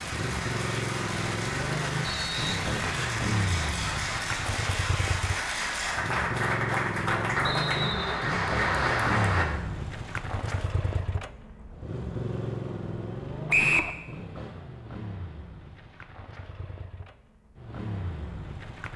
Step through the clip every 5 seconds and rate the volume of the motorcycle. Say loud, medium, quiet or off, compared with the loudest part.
loud, loud, loud, medium.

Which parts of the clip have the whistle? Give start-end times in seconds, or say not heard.
2.0-3.1, 7.5-8.2, 13.5-13.9.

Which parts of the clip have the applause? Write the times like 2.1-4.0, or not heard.
0.0-9.4.